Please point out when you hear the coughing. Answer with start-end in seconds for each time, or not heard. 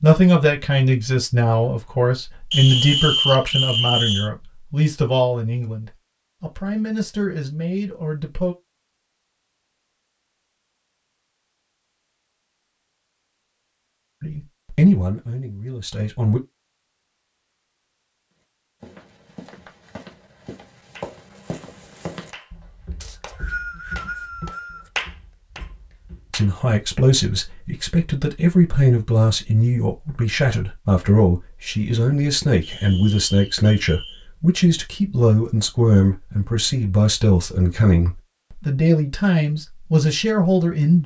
not heard.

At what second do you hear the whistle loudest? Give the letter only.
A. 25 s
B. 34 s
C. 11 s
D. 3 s
D.